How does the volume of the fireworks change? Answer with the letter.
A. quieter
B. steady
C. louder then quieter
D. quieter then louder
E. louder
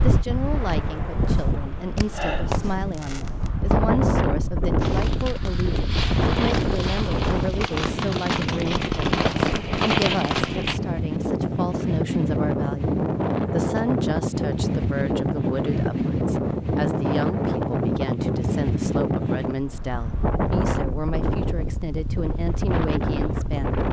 E.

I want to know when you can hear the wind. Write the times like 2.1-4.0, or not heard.
0.0-23.8.